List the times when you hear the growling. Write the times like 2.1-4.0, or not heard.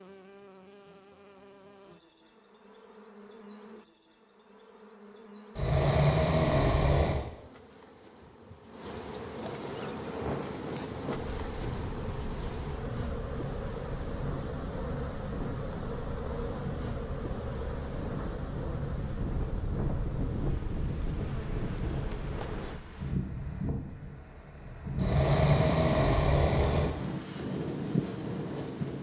5.5-7.2, 24.9-26.9.